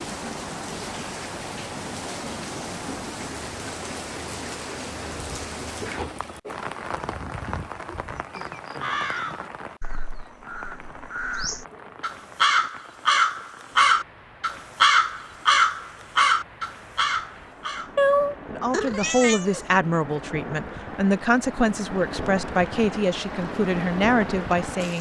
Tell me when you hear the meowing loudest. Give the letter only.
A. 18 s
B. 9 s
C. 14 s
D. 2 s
A.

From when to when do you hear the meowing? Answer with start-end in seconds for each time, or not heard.
17.9-19.6.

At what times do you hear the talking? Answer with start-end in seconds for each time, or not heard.
18.5-24.9.